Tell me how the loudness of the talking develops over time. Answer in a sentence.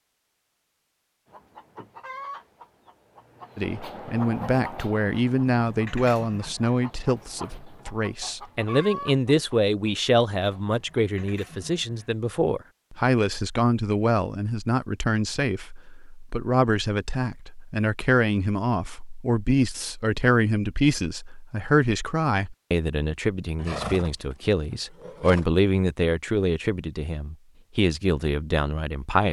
The loudness of the talking stays about the same.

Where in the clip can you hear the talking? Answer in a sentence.
You can hear the talking from 3.5 to 29.2 s.